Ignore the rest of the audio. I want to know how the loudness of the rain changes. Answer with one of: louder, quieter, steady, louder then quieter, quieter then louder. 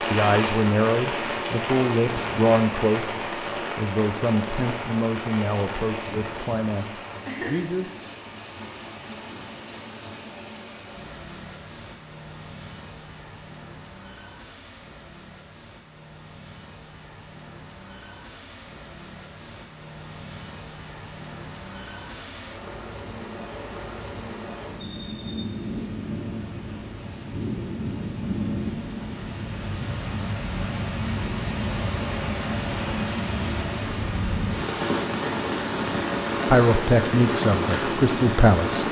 quieter then louder.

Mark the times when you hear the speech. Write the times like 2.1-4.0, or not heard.
0.1-8.0, 36.5-38.8.